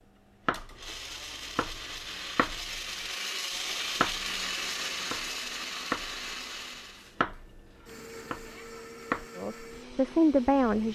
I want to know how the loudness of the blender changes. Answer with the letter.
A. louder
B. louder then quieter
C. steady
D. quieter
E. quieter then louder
B.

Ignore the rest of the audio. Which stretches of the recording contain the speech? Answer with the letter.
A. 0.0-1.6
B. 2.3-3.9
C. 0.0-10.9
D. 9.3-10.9
D.